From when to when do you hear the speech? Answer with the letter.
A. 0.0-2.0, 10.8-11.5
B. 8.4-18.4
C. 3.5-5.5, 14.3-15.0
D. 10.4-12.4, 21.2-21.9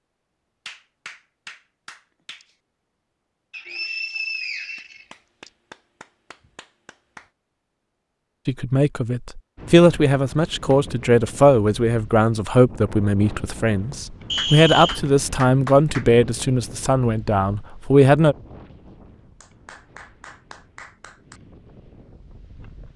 B.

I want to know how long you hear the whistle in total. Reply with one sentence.
The whistle can be heard for 3 seconds in total.